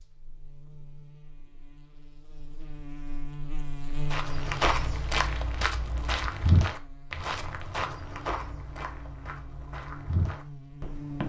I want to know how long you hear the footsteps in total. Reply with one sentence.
The footsteps can be heard for 7 seconds in total.